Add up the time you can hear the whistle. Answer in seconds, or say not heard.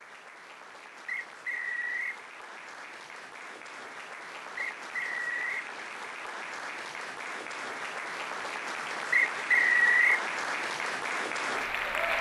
3 s.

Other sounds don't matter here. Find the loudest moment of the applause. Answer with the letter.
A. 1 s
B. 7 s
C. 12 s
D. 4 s
C.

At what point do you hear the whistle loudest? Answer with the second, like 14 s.
10 s.